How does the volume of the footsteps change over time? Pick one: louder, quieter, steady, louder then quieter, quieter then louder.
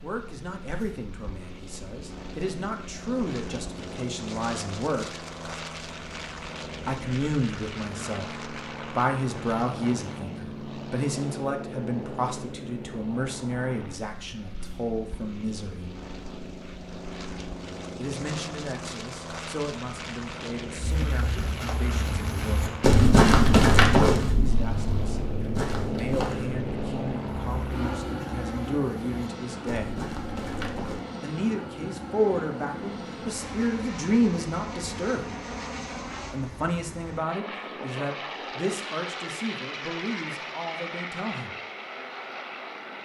louder then quieter.